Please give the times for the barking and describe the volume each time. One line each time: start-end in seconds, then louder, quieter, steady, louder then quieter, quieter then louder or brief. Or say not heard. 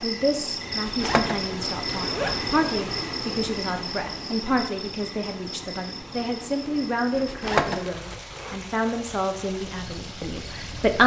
not heard.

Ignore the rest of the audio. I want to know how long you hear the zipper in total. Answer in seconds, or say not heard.
3 s.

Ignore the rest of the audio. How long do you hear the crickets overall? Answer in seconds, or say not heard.
11 s.